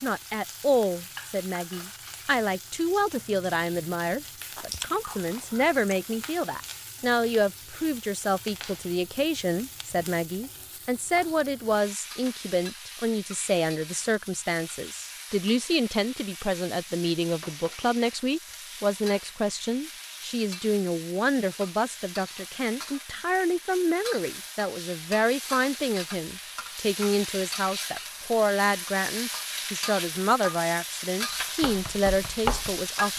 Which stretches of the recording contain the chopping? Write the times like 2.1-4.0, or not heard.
31.6-33.1.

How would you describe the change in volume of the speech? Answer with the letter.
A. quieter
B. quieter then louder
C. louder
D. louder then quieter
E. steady
E.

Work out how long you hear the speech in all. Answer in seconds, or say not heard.
33 s.